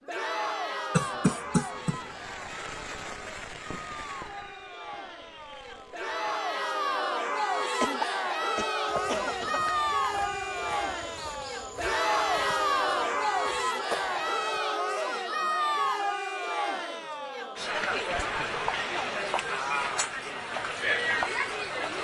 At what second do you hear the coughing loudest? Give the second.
1 s.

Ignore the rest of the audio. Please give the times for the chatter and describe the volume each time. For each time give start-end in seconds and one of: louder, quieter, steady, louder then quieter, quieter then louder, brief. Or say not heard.
0.0-21.9 louder.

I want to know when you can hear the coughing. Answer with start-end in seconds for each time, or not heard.
0.9-2.0, 7.8-9.7, 17.7-18.6.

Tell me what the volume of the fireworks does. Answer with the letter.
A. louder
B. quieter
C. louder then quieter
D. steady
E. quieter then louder
B.